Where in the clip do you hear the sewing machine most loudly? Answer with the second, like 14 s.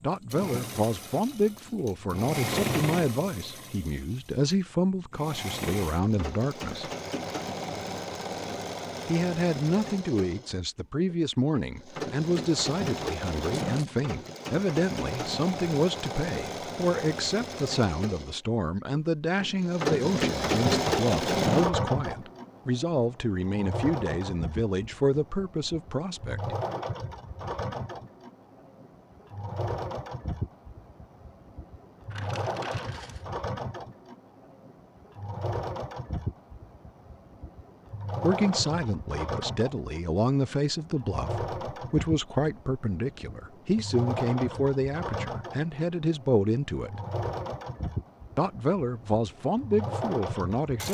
21 s.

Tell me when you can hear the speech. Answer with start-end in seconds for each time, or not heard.
0.0-6.9, 9.1-26.6, 38.2-47.0, 48.4-50.8.